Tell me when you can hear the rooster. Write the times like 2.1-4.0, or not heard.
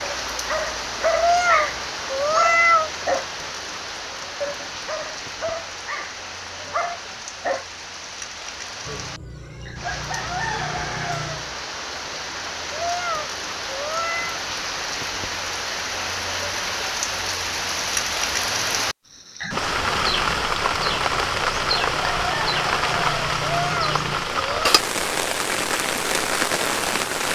8.8-11.5, 20.8-24.3.